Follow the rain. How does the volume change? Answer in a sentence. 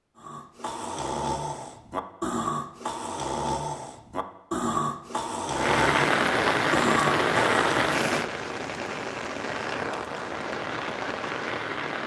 The loudness of the rain goes down.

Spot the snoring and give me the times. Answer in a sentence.
The snoring can be heard from 0.1 to 7.8 s.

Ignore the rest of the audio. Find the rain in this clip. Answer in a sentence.
The rain can be heard from 5.5 to 12.0 s.